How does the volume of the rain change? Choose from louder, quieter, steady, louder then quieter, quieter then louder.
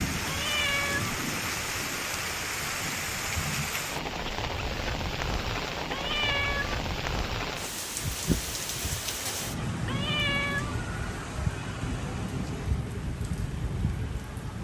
steady.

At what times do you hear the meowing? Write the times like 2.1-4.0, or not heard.
0.2-1.2, 5.8-6.8, 9.8-10.8.